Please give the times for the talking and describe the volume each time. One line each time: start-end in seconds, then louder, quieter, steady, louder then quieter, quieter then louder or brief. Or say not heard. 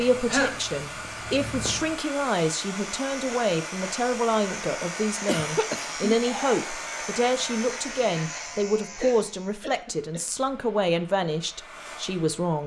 0.0-12.6 steady.